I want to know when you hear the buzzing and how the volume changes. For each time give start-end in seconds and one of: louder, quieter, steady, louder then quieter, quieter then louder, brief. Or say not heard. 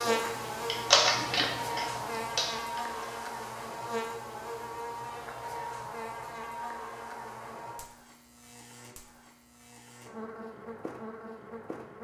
0.0-11.9 quieter.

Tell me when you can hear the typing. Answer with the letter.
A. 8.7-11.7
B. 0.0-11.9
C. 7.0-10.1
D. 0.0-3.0
D.